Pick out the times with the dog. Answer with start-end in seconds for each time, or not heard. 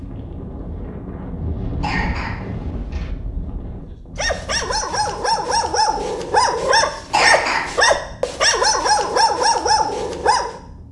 4.2-10.6.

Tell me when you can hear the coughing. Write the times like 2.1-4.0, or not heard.
1.8-3.1, 7.1-7.8.